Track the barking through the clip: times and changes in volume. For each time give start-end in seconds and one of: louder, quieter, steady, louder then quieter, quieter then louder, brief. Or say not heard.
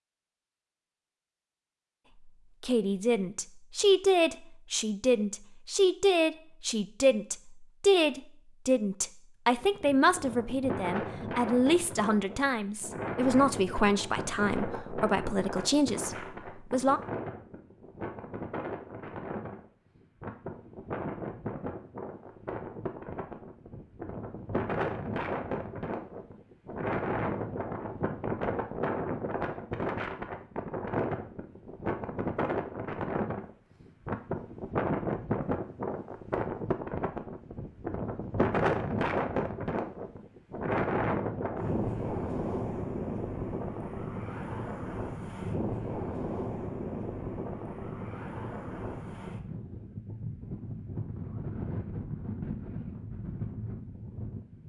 not heard.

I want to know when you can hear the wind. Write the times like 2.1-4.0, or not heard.
9.4-54.6.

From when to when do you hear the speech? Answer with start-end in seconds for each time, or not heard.
2.6-17.0.